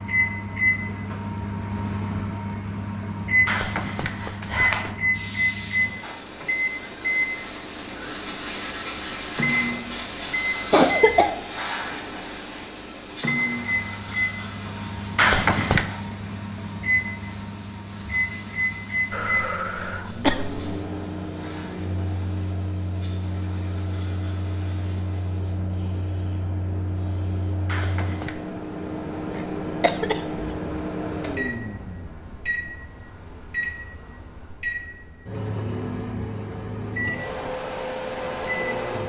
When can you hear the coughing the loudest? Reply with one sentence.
The loudest moment of the coughing is at 11 seconds.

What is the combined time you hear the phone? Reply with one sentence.
You can hear the phone for 3 seconds altogether.